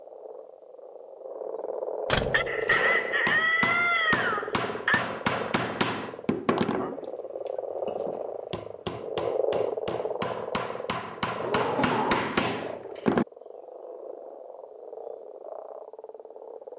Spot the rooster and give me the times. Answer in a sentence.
The rooster can be heard from 2.3 to 5.0 s.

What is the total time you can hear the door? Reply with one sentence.
The door can be heard for 2 seconds in total.